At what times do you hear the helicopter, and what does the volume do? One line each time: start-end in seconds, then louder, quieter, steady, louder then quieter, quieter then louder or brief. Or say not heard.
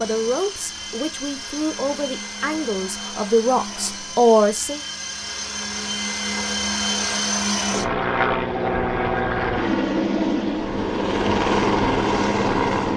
0.0-12.9 louder.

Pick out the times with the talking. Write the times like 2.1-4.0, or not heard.
0.0-4.8.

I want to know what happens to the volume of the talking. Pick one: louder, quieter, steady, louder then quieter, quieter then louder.
louder.